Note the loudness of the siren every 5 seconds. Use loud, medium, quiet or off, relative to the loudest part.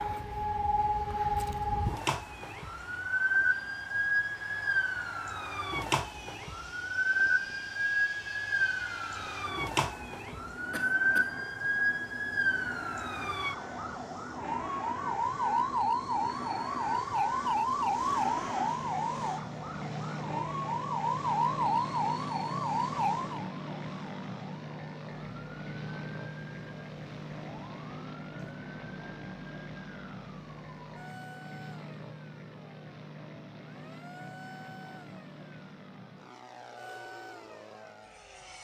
loud, loud, loud, loud, loud, quiet, quiet, quiet.